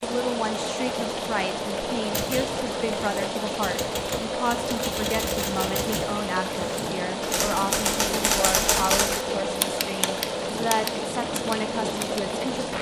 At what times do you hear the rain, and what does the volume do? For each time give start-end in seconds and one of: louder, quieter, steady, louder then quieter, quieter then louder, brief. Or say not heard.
0.0-12.7 steady.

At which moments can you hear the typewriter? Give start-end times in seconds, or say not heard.
2.1-12.2.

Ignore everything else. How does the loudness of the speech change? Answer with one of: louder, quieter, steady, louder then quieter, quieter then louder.
steady.